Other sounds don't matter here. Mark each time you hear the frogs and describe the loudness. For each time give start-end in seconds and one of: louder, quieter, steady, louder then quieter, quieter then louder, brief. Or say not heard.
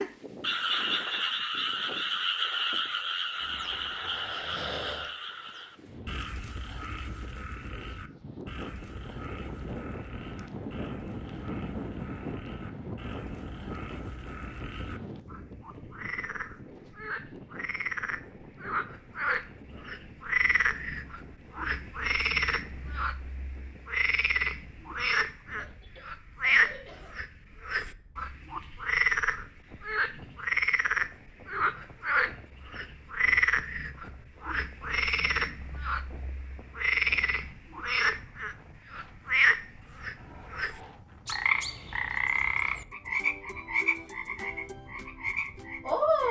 0.0-46.2 quieter then louder.